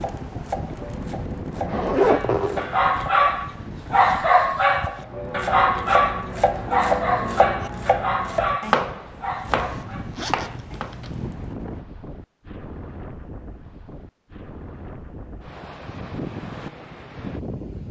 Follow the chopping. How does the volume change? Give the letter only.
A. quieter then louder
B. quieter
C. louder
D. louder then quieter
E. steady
C.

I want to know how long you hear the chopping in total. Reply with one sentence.
You can hear the chopping for 9 seconds altogether.